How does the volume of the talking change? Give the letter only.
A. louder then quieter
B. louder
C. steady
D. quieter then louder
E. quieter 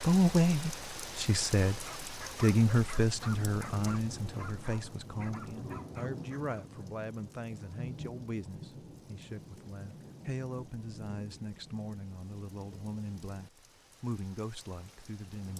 E.